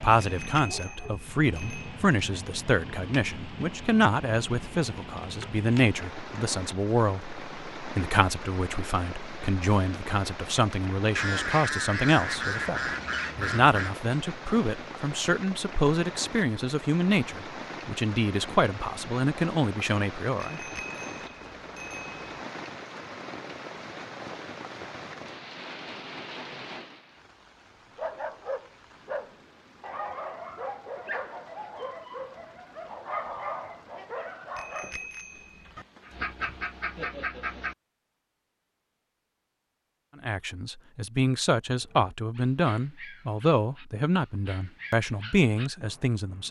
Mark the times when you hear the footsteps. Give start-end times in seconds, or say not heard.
not heard.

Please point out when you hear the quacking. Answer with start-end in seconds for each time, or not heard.
11.2-13.9, 35.8-37.8.